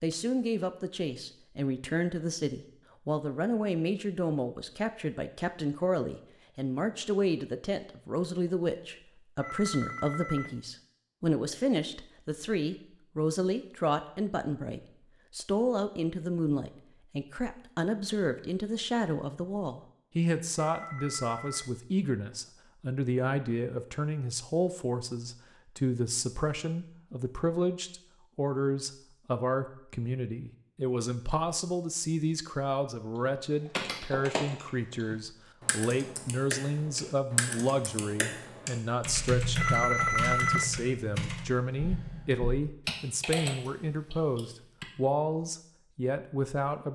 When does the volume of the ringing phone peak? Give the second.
40 s.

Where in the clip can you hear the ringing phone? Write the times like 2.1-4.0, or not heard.
9.4-10.6, 20.6-21.8, 39.5-40.7.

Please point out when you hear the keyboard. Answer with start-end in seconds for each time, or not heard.
33.2-44.9.